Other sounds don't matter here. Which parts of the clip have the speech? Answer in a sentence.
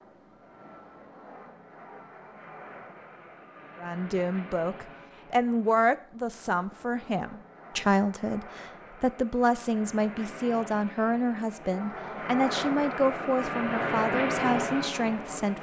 You can hear the speech from 3.8 to 15.5 s.